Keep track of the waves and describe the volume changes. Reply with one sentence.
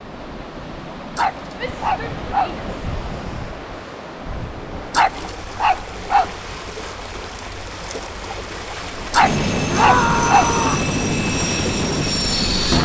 The loudness of the waves stays about the same.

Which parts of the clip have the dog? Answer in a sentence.
The dog can be heard from 1.1 to 2.5 s, from 4.9 to 6.3 s and from 9.1 to 10.6 s.